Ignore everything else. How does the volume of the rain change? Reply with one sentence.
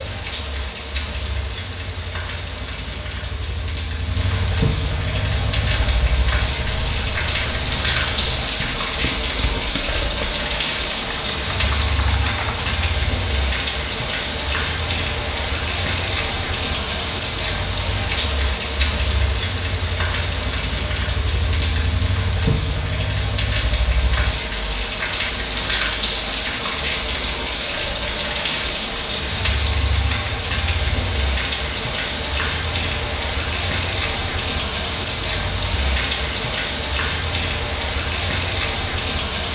The volume of the rain stays about the same.